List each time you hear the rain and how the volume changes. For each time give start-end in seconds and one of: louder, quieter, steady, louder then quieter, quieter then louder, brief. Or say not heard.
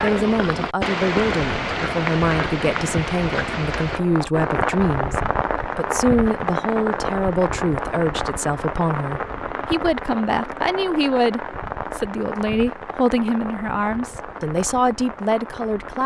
0.0-16.0 quieter.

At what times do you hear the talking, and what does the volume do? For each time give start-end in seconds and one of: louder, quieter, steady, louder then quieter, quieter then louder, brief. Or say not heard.
0.0-16.0 steady.